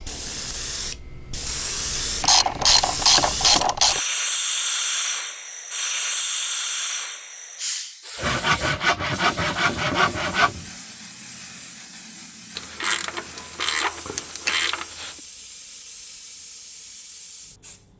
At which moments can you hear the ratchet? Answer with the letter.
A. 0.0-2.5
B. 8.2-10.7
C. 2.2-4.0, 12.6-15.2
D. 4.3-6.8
C.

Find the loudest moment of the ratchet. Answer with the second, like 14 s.
3 s.